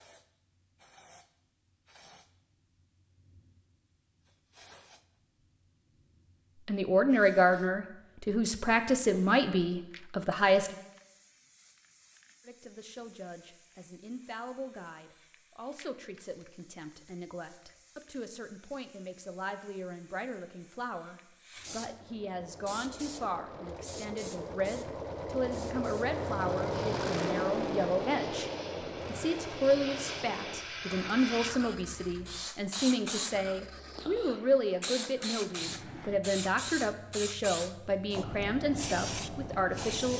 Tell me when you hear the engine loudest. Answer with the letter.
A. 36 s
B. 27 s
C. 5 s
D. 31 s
B.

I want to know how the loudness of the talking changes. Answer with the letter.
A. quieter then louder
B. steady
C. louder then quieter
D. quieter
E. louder
A.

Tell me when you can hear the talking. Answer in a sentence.
The talking can be heard from 6.7 to 10.8 s and from 12.4 to 40.1 s.